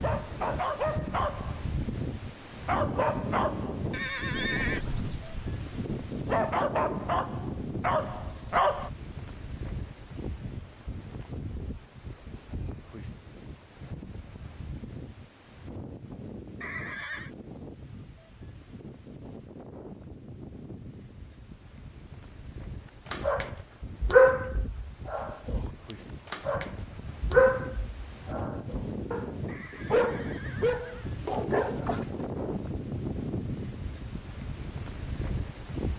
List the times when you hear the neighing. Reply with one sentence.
The neighing can be heard from 3.9 to 4.8 s, from 16.6 to 17.3 s and from 29.4 to 31.1 s.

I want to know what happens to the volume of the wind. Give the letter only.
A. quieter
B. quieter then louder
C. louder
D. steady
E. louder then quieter
B.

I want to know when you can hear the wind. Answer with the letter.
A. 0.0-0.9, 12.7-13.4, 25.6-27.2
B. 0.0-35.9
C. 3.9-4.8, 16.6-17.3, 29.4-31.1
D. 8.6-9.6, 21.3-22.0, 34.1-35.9
B.